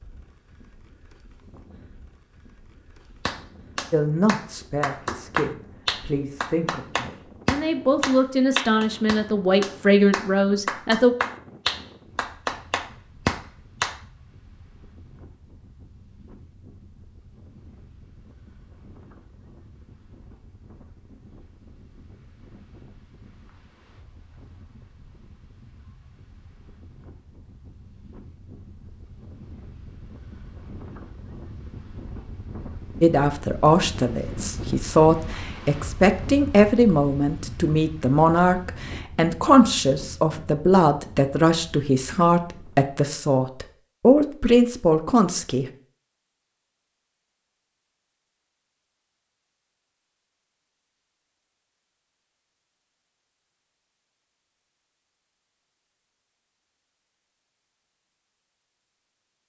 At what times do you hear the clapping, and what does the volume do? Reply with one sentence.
The clapping can be heard from 3.2 to 14.0 s, at a steady volume.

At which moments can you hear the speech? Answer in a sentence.
You can hear the speech from 3.9 to 11.2 s and from 33.0 to 45.6 s.